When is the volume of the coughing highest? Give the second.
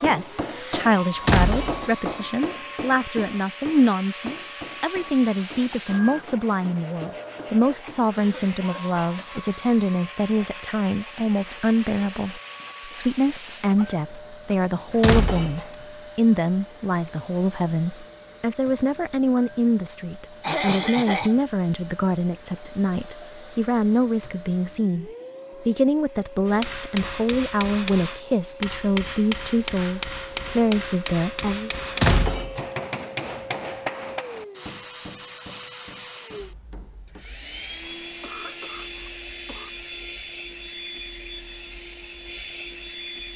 21 s.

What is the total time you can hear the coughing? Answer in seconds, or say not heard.
4 s.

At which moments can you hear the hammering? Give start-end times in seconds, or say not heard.
0.0-8.2, 26.4-37.2.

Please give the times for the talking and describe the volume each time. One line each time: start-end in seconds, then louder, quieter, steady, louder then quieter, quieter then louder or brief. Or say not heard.
0.0-31.7 steady.